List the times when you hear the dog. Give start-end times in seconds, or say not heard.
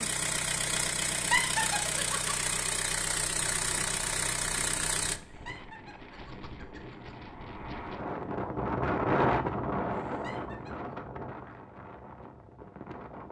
not heard.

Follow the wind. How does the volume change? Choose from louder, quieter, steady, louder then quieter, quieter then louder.
louder then quieter.